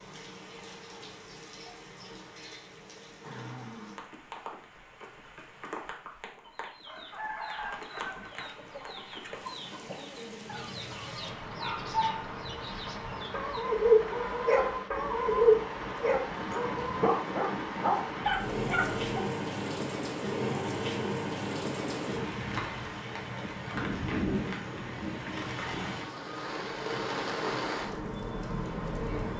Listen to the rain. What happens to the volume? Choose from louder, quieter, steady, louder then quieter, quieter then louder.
louder.